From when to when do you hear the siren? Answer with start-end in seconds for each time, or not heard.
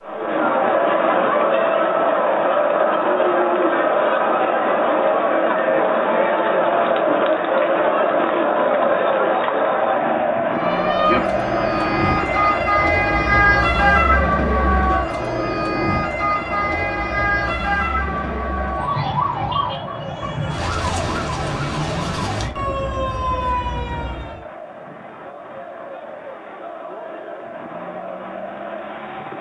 10.5-24.4.